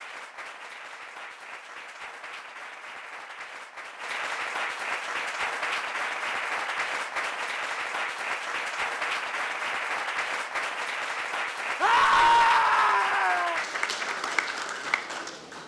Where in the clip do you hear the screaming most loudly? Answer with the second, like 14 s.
12 s.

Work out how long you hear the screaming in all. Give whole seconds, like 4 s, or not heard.
2 s.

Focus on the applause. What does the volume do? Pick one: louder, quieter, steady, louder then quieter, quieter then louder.
louder.